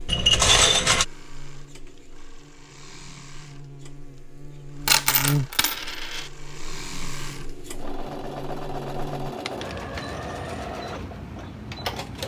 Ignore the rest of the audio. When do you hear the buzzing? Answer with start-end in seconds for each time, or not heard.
0.0-9.3.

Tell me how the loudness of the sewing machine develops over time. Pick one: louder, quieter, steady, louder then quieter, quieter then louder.
louder.